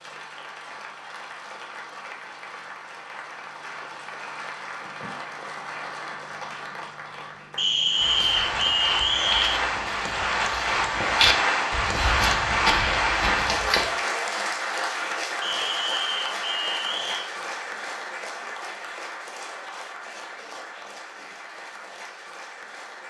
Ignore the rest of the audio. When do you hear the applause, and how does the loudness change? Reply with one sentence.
You can hear the applause from 0.0 to 23.0 s, getting louder then quieter.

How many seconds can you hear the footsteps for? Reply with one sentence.
The footsteps can be heard for 6 seconds in total.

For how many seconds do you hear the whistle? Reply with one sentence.
The whistle can be heard for 4 seconds in total.